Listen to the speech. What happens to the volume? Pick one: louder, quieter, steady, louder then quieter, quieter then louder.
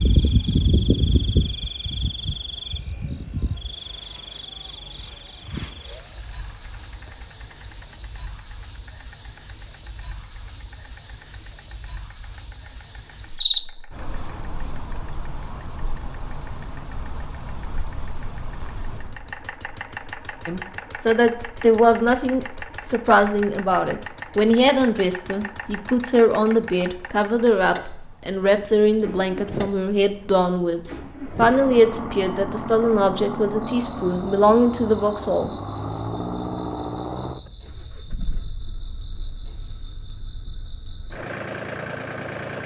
steady.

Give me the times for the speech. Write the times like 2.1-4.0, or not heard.
20.4-35.5.